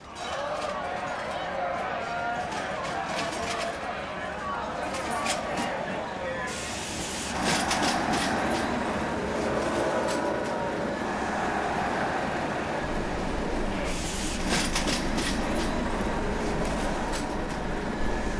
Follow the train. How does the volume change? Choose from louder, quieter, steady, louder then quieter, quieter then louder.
louder.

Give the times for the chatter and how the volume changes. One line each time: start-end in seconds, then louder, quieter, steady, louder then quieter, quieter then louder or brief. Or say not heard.
0.0-18.3 quieter.